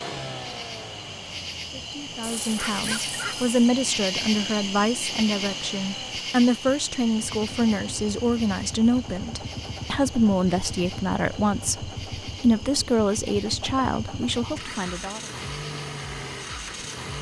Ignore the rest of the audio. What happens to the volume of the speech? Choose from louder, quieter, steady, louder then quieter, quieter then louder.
steady.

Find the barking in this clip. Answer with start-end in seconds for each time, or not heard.
2.2-3.5.